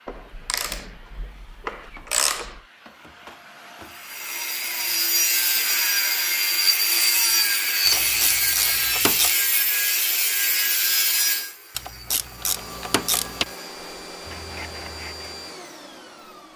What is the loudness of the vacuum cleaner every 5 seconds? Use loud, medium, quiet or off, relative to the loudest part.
medium, off, loud, loud.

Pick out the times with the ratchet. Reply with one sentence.
The ratchet can be heard from 0.1 to 2.6 s, from 7.8 to 9.3 s and from 11.8 to 13.5 s.